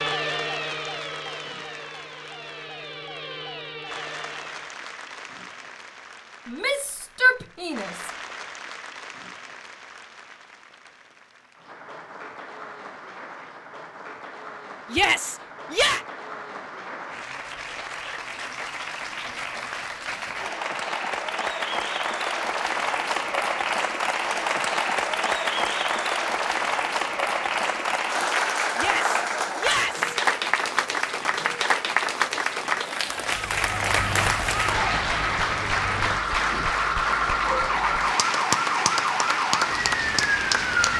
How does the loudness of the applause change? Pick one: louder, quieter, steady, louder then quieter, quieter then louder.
louder.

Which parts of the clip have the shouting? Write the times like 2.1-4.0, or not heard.
6.5-8.1, 14.9-16.0, 28.8-30.1.